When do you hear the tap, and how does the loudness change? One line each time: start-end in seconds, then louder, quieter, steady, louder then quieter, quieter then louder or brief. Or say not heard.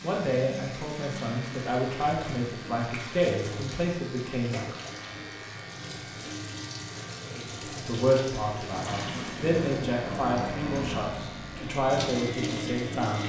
0.0-13.2 louder.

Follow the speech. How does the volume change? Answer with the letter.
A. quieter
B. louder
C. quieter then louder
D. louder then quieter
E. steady
E.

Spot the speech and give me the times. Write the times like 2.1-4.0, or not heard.
0.0-4.8, 7.3-13.2.